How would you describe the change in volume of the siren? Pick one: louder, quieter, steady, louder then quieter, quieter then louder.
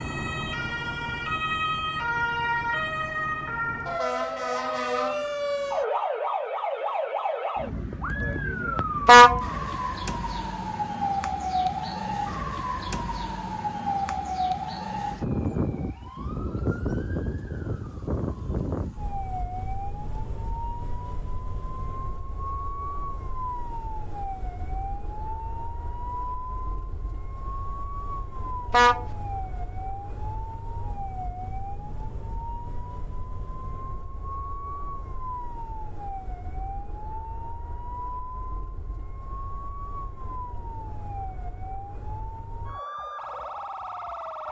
quieter.